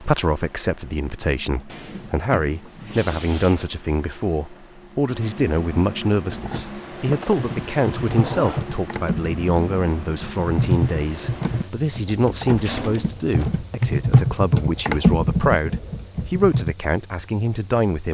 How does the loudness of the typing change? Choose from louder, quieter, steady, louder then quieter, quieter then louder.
louder.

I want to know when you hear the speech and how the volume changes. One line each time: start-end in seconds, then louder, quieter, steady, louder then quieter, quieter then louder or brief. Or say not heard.
0.0-18.0 steady.